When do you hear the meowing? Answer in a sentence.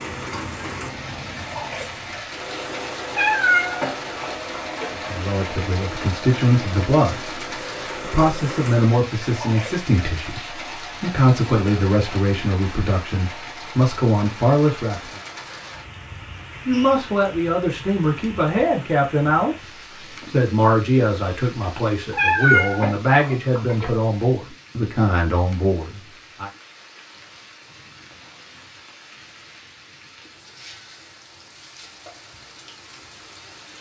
You can hear the meowing from 3.1 to 4.9 s and from 22.1 to 23.9 s.